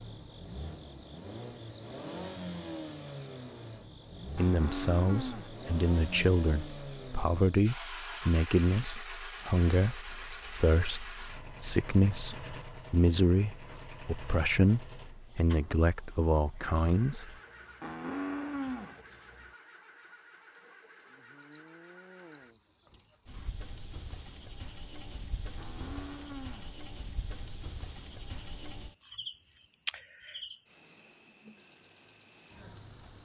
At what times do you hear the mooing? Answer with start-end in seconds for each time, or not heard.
4.3-5.5, 17.8-19.0, 25.6-26.8.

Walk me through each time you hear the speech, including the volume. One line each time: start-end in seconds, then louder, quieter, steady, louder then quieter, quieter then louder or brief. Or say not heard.
4.3-17.4 steady.